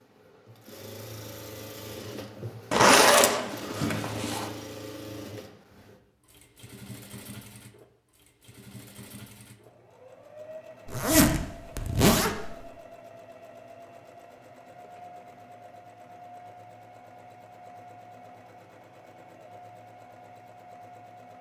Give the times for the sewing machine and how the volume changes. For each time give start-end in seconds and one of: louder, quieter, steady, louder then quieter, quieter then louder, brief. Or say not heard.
0.0-21.3 quieter.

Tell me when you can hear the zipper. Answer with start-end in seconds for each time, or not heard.
2.7-4.5, 10.8-12.6.